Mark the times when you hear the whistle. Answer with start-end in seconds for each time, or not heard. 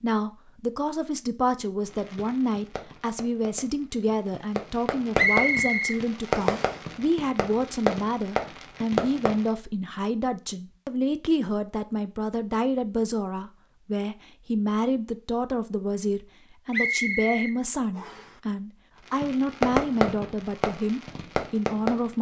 5.2-6.8, 16.7-18.3.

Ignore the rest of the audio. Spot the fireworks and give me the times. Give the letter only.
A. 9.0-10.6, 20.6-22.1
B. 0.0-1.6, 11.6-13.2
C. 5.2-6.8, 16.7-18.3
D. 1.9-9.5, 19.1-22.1
D.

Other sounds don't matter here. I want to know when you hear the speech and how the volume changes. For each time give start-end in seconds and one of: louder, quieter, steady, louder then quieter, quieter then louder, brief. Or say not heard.
0.0-22.1 steady.